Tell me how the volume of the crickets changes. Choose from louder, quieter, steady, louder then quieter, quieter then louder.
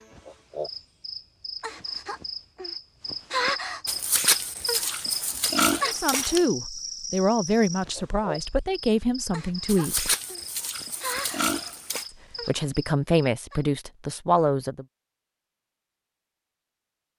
louder then quieter.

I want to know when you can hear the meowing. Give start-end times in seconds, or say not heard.
not heard.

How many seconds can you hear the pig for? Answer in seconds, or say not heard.
5 s.